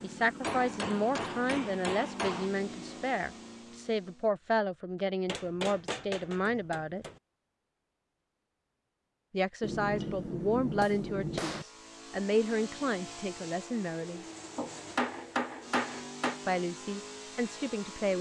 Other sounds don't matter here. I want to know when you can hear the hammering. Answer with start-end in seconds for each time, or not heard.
0.4-2.5, 5.2-7.2, 9.6-11.7, 14.6-16.4.